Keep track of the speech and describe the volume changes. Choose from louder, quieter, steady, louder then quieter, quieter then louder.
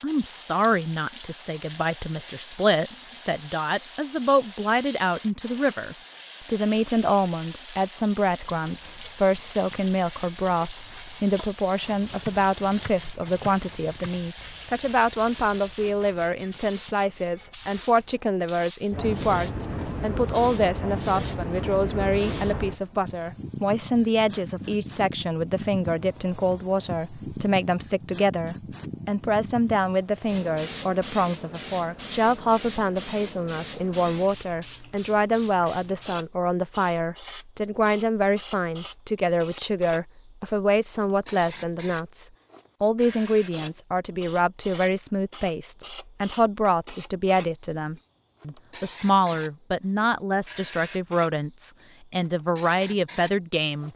steady.